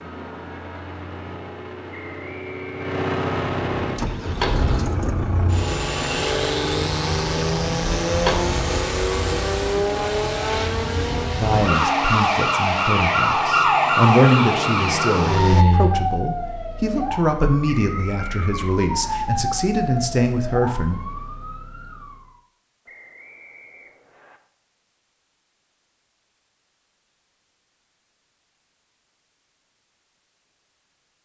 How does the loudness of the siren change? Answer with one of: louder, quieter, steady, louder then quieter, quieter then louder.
louder then quieter.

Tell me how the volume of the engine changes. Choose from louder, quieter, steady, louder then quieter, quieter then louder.
louder then quieter.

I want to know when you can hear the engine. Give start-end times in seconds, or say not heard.
0.0-15.7.